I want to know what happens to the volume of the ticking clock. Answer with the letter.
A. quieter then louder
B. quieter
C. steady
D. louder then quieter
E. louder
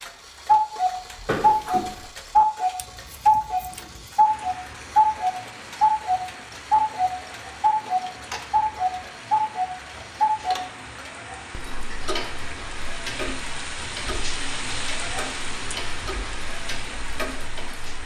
B.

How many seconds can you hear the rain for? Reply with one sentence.
The rain can be heard for 14 seconds in total.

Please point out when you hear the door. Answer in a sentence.
You can hear the door from 1.2 to 2.0 s.